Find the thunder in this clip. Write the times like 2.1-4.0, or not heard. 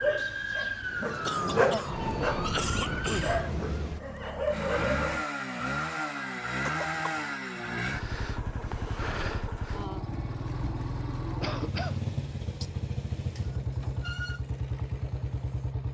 0.1-4.0.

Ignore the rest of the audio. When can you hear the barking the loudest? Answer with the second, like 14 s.
2 s.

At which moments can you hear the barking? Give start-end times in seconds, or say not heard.
0.0-5.2.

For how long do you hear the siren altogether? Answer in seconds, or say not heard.
4 s.